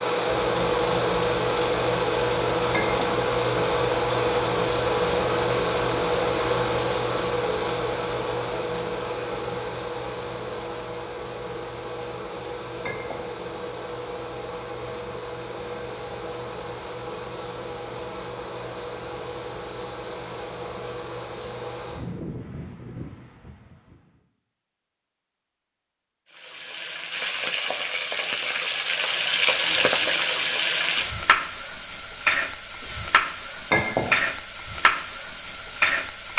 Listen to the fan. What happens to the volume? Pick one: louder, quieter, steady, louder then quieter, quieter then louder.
quieter.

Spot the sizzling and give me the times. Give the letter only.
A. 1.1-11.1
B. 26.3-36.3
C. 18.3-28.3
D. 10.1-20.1
B.